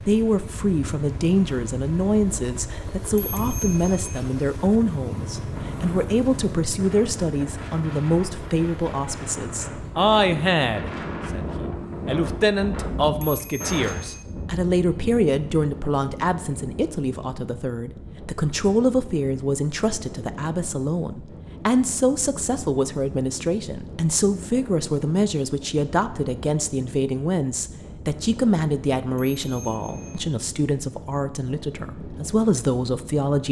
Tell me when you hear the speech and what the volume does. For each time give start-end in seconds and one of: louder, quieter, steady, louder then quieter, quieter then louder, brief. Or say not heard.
0.1-33.4 steady.